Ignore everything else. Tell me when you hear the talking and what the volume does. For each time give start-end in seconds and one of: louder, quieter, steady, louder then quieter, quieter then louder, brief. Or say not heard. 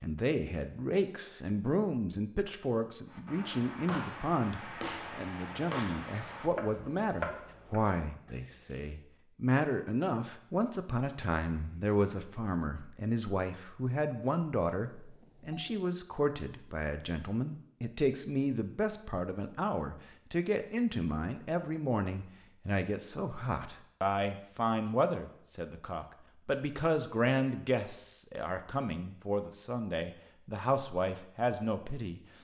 0.0-32.2 steady.